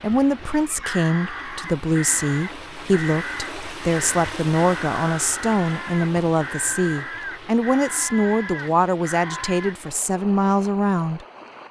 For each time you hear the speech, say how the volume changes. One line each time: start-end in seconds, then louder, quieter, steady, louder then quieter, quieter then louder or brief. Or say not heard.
0.0-11.6 steady.